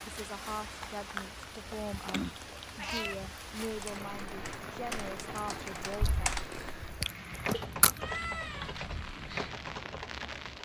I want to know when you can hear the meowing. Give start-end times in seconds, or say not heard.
2.8-3.2, 7.5-8.8.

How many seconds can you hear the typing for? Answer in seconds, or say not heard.
7 s.